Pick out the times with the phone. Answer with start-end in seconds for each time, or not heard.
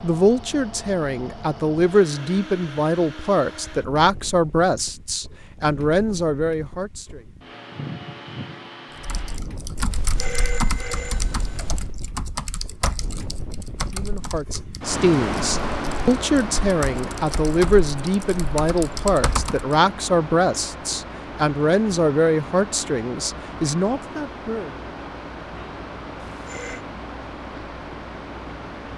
9.9-11.9, 26.1-26.9.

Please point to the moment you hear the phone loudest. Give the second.
10 s.